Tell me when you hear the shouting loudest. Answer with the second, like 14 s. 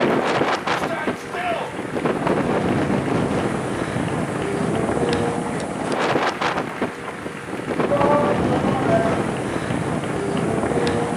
8 s.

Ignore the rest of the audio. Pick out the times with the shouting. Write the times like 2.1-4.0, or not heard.
0.7-1.7, 7.8-9.2.